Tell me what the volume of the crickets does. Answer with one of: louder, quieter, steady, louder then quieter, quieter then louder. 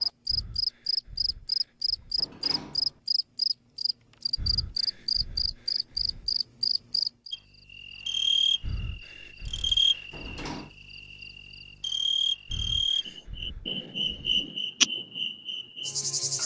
steady.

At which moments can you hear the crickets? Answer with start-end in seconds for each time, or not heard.
0.0-16.4.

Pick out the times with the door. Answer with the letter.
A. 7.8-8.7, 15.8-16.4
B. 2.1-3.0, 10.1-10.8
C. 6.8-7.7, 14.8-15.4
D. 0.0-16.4
B.